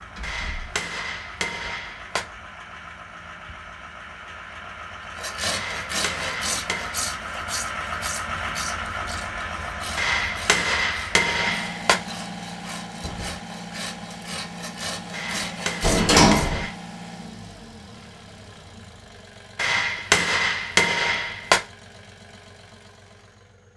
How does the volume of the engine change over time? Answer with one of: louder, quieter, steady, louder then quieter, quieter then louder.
louder then quieter.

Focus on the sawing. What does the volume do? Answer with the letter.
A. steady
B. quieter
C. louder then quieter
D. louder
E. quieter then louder
E.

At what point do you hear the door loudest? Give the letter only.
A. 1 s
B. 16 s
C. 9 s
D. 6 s
B.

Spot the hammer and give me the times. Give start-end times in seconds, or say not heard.
0.2-2.2, 5.5-7.0, 9.9-12.0, 15.1-16.8, 19.6-21.6.